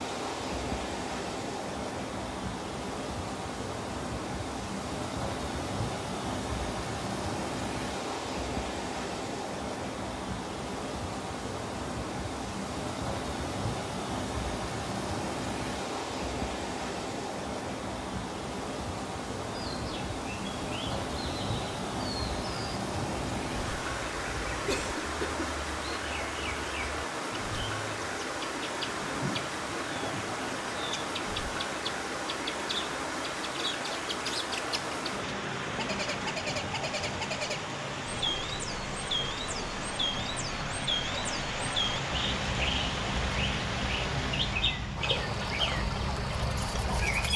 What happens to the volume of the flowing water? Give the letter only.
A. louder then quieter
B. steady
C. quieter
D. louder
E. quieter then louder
B.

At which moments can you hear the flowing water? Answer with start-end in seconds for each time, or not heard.
0.0-47.3.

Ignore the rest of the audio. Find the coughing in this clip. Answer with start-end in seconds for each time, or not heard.
24.6-25.5.